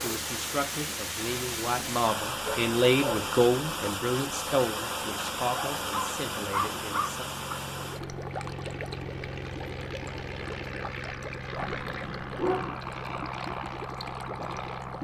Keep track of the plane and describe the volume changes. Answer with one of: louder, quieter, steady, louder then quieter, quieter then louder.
louder.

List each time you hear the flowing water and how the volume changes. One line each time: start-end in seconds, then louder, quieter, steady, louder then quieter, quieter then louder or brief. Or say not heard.
0.0-15.0 quieter.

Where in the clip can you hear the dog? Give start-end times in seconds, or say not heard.
2.5-3.2, 5.5-7.5, 11.6-12.8.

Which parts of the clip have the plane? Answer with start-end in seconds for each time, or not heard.
0.1-15.0.